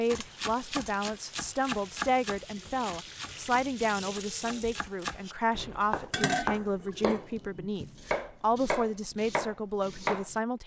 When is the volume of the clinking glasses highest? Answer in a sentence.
The loudest moment of the clinking glasses is at 6 seconds.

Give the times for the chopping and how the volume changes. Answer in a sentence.
The chopping can be heard from 0.1 to 10.4 s, getting quieter then louder.